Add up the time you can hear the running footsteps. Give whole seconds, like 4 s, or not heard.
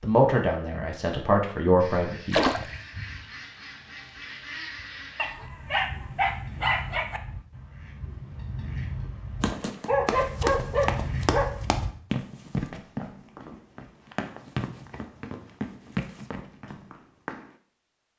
8 s.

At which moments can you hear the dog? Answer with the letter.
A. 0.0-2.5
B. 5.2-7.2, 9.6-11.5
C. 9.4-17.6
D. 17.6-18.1
B.